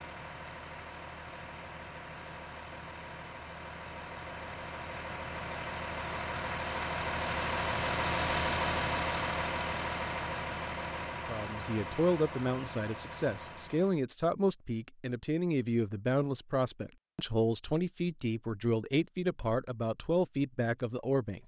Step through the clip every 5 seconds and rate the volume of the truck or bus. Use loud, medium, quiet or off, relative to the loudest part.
medium, loud, medium, off, off.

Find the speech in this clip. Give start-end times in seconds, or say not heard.
11.2-21.4.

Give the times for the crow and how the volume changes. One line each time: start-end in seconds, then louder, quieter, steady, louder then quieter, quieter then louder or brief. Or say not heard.
not heard.